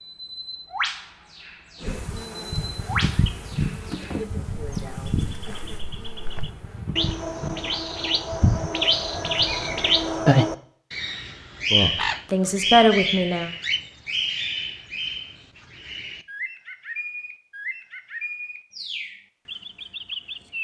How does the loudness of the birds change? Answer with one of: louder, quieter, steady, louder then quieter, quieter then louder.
louder then quieter.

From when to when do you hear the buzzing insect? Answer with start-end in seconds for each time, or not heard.
1.8-7.8.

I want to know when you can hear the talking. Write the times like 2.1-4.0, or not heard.
11.7-13.5.